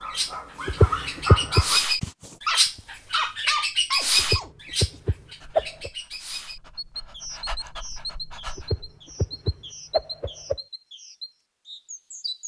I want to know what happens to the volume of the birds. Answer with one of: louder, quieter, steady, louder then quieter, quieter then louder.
quieter.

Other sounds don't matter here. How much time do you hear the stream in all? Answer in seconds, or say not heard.
not heard.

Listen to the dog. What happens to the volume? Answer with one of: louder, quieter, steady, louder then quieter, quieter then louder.
quieter then louder.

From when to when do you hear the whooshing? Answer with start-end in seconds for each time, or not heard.
0.7-1.6, 4.2-5.9, 8.6-10.6.